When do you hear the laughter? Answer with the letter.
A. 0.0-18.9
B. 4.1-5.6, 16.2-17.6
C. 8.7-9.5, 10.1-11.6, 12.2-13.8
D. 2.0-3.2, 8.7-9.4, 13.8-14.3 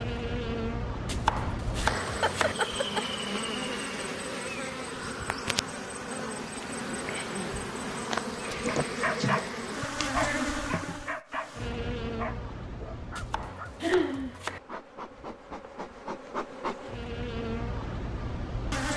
D.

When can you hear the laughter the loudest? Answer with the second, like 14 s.
14 s.